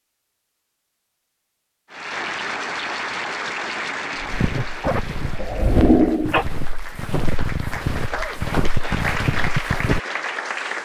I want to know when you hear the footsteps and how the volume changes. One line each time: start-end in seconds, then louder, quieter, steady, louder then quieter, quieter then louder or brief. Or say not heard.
4.2-10.0 louder.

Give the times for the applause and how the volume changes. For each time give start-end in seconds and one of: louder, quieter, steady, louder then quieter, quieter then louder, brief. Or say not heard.
1.9-10.8 quieter then louder.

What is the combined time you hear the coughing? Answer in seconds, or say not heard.
2 s.